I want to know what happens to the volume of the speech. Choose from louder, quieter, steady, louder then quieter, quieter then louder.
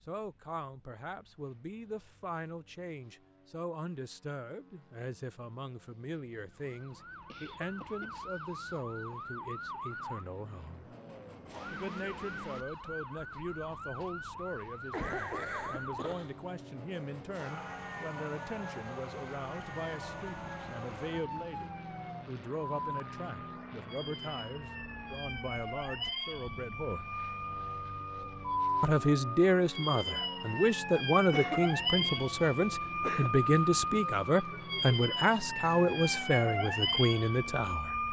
louder.